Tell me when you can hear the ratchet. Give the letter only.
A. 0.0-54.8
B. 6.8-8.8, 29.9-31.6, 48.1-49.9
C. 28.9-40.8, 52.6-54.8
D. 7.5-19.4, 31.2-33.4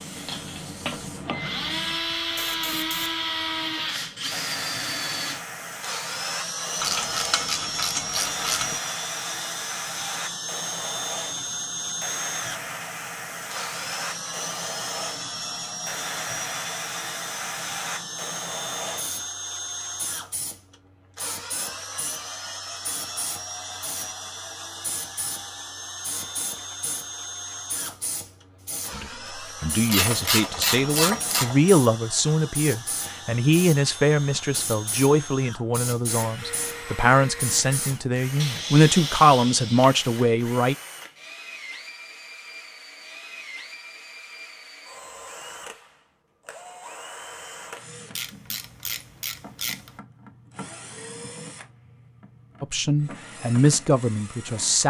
B.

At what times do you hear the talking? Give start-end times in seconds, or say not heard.
28.9-40.8, 52.6-54.8.